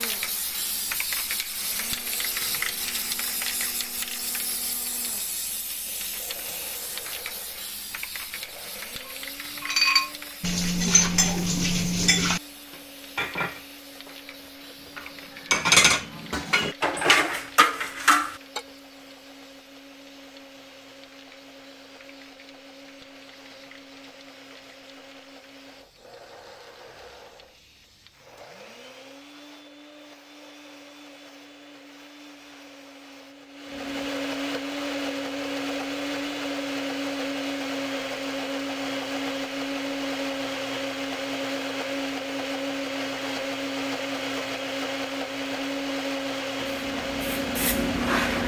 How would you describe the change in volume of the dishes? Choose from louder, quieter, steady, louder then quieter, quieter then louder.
quieter then louder.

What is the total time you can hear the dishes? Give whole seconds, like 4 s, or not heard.
9 s.